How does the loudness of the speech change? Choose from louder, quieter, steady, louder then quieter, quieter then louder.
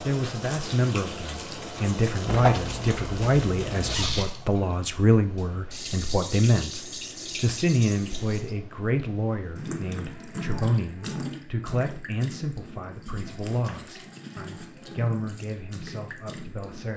quieter.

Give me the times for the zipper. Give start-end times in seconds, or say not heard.
2.2-4.3.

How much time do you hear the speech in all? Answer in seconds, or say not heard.
17 s.